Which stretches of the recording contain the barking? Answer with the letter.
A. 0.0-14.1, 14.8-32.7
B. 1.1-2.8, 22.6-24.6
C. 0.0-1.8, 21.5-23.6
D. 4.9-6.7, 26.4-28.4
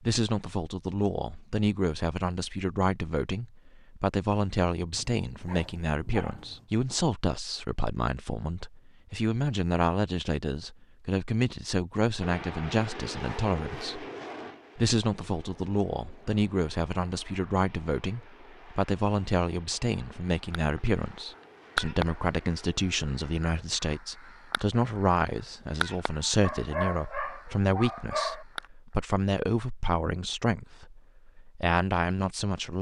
D.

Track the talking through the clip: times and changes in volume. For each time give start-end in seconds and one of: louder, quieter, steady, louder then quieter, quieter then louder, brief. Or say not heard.
0.0-14.1 steady
14.8-32.7 steady.